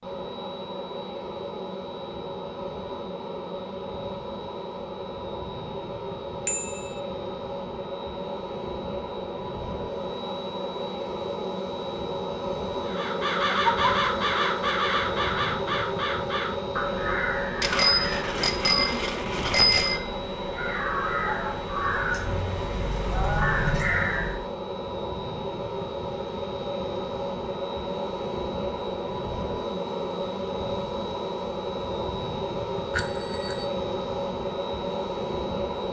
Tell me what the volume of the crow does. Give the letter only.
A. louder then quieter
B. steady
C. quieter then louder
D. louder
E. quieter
C.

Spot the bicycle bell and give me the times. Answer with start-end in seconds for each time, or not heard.
6.5-7.0, 17.6-20.0, 32.9-33.7.